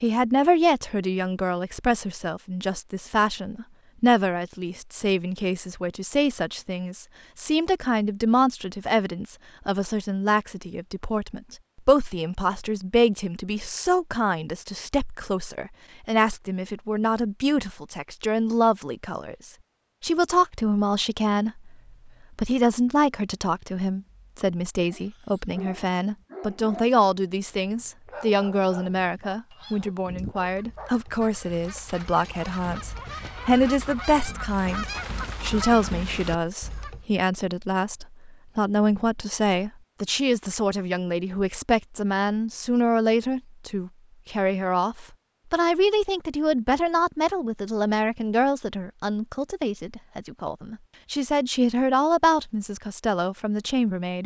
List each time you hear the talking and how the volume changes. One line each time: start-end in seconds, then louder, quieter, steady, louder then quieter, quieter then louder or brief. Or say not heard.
0.0-54.2 steady.